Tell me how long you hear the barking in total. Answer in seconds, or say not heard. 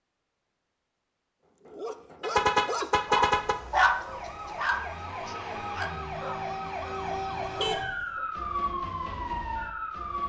7 s.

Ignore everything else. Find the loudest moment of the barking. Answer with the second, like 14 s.
4 s.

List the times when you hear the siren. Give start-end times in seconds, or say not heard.
4.0-10.2.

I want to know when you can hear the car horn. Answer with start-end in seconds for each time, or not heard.
2.2-3.5, 7.4-8.1.